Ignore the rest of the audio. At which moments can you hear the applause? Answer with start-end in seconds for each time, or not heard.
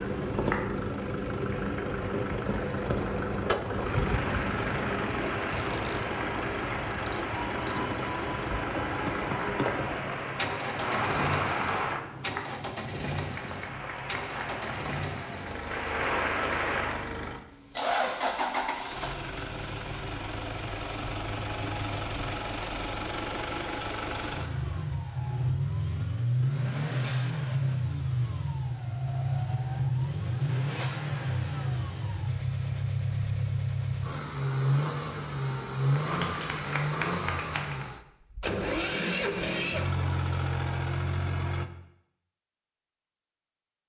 0.1-17.1, 35.9-37.9.